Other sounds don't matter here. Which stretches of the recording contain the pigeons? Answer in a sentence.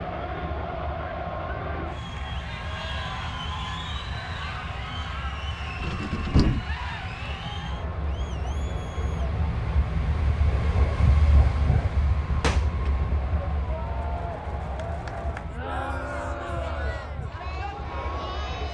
You can't hear the pigeons here.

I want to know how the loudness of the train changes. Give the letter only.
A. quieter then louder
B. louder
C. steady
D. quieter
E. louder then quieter
E.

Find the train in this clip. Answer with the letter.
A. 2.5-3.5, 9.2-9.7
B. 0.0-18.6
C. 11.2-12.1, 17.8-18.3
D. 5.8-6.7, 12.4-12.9
B.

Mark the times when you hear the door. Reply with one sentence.
You can hear the door from 5.8 to 6.7 s and from 12.4 to 12.9 s.